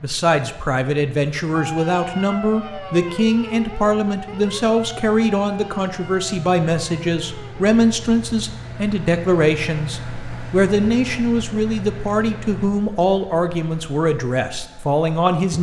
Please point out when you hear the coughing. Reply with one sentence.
The coughing can't be heard in this clip.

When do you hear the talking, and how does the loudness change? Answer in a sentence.
You can hear the talking from 0.0 to 15.5 s, at a steady volume.